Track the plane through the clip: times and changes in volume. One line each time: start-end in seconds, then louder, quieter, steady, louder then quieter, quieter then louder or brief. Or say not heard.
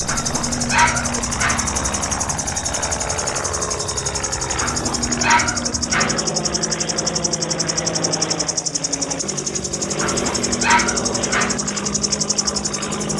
0.0-13.1 steady.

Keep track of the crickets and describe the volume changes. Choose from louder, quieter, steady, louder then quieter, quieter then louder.
steady.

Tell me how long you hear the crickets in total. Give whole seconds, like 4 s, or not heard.
13 s.